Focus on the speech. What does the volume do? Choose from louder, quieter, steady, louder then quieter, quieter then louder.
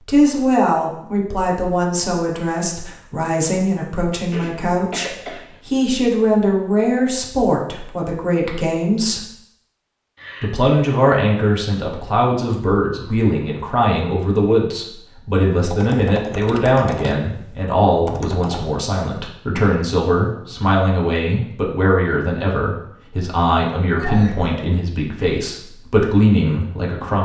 steady.